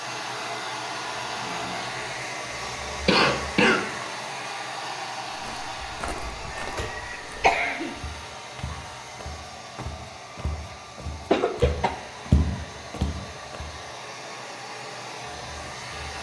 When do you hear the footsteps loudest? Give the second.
12 s.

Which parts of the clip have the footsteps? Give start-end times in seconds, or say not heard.
5.3-13.7.